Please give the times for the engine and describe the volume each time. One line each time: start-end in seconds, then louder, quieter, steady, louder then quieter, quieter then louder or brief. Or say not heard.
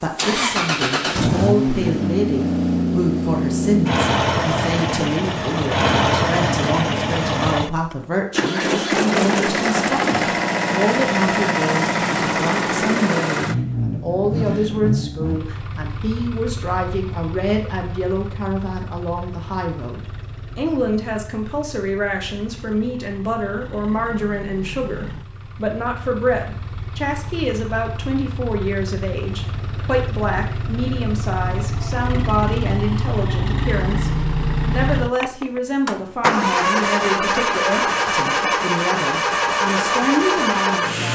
0.0-41.0 quieter then louder.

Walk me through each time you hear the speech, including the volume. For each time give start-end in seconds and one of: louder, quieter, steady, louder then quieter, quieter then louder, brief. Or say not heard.
0.0-41.0 steady.